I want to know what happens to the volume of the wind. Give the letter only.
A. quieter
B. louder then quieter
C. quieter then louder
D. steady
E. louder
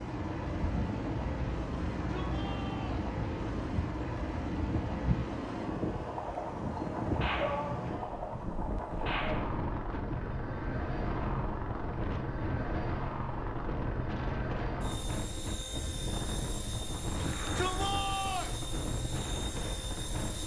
D.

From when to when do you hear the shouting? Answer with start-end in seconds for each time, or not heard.
1.9-3.1, 7.3-8.0, 17.2-18.6.